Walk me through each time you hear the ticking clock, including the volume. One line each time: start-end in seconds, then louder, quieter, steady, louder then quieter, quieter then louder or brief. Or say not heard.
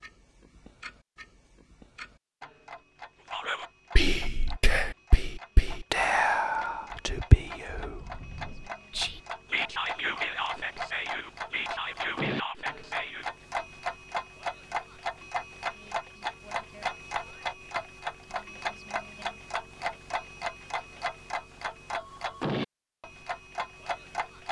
0.0-24.4 louder.